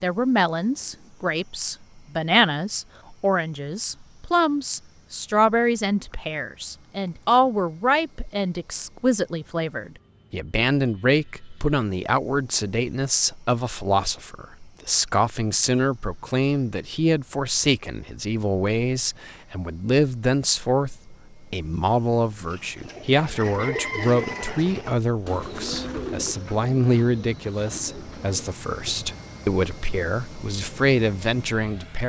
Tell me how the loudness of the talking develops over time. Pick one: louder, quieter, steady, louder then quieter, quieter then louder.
steady.